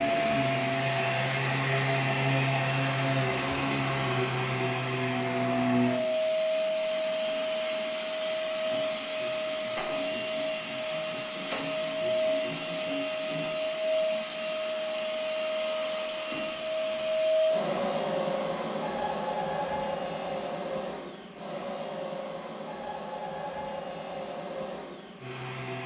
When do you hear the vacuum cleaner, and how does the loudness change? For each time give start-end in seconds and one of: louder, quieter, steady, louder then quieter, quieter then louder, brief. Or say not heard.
0.0-25.8 quieter.